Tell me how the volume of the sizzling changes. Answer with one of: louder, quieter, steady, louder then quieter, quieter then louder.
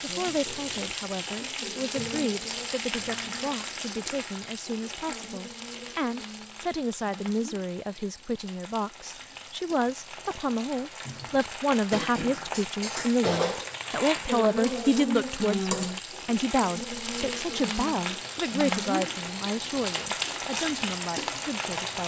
quieter then louder.